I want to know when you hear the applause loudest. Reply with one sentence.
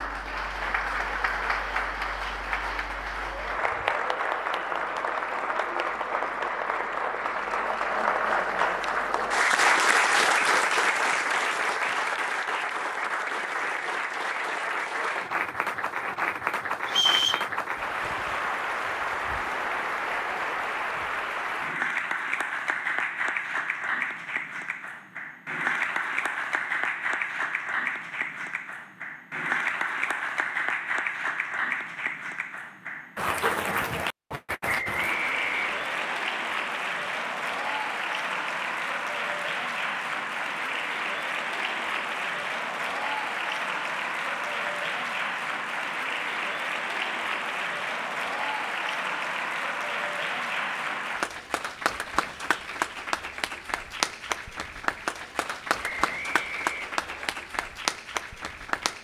The loudest moment of the applause is at 10 seconds.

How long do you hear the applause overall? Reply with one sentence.
The applause can be heard for 59 seconds in total.